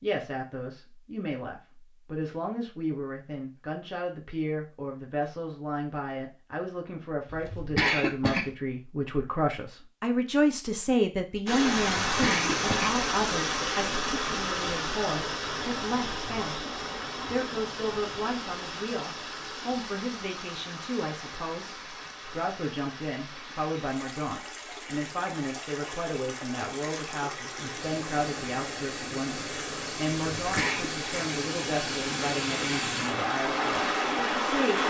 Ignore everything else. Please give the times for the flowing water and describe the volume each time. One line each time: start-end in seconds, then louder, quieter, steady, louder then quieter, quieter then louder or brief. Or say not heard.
11.4-34.8 quieter then louder.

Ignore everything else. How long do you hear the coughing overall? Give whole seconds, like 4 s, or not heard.
3 s.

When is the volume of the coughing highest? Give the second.
8 s.